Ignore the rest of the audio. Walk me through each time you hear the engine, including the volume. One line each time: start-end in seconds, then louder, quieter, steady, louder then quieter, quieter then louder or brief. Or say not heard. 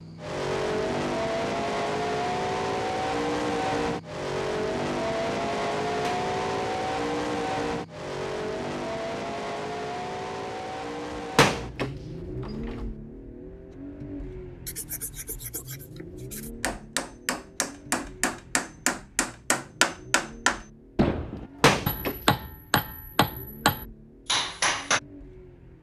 0.0-25.7 quieter.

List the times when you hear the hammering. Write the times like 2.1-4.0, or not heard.
16.6-25.0.